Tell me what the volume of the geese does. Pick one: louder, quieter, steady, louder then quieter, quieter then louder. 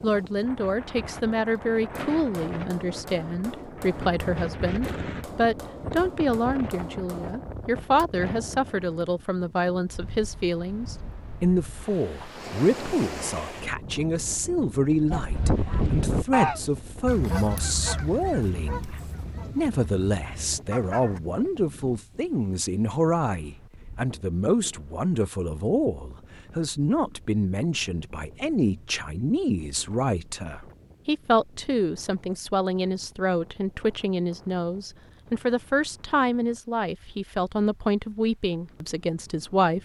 quieter.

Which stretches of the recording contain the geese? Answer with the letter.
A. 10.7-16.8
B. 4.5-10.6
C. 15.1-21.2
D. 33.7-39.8
C.